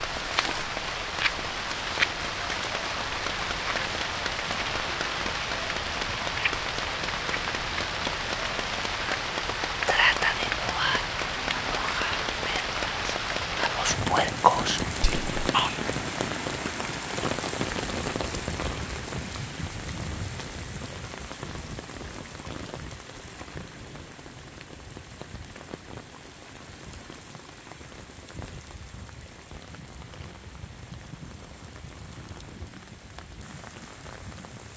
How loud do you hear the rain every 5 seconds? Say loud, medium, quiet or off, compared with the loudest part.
loud, loud, loud, loud, medium, quiet, quiet.